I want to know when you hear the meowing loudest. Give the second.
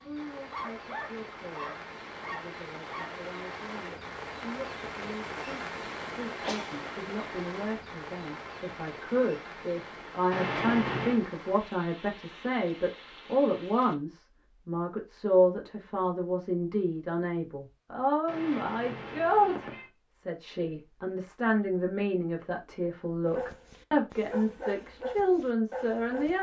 11 s.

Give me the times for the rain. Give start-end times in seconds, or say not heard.
0.0-13.9.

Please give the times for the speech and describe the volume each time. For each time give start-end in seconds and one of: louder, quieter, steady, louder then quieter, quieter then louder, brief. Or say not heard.
0.0-26.3 louder.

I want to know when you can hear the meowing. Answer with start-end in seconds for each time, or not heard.
10.3-11.2, 18.2-19.9.